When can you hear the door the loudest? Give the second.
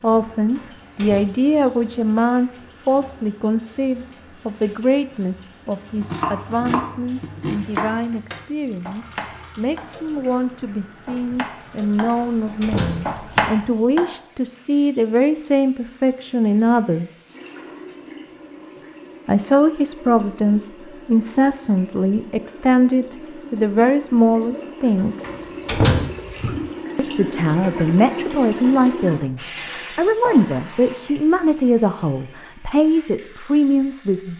26 s.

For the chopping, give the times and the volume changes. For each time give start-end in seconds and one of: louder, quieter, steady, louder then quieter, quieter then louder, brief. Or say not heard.
5.9-14.2 quieter then louder.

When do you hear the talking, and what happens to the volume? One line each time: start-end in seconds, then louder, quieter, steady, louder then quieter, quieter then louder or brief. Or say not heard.
0.0-17.2 quieter then louder
19.2-25.5 steady
26.9-34.3 steady.